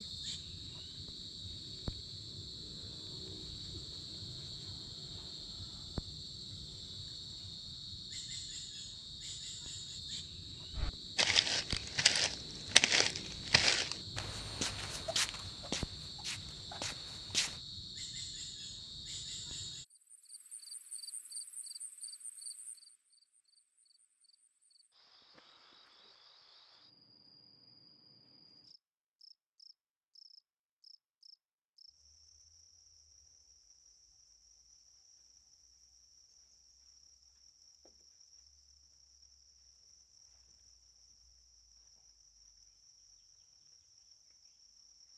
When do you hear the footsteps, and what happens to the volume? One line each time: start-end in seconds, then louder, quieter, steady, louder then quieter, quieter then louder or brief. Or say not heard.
10.8-17.6 quieter.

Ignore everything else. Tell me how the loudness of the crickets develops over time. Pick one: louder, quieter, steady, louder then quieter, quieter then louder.
quieter.